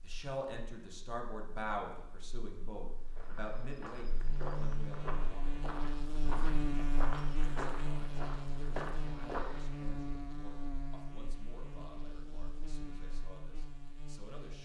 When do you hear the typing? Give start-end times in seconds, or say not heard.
not heard.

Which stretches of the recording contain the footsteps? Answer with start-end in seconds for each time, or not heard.
3.1-9.8.